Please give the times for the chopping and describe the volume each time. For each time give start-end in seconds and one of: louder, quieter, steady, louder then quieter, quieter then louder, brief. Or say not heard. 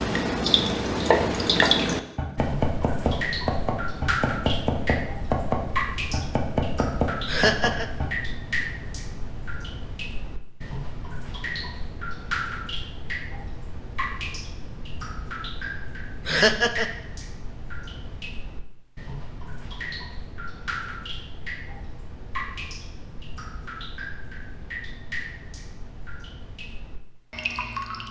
1.0-8.1 steady.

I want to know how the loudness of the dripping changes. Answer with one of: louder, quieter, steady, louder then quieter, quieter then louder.
quieter.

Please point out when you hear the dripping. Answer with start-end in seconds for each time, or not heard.
0.0-28.0.